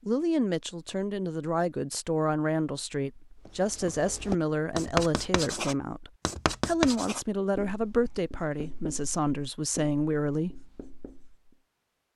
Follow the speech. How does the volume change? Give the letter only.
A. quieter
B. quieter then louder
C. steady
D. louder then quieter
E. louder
C.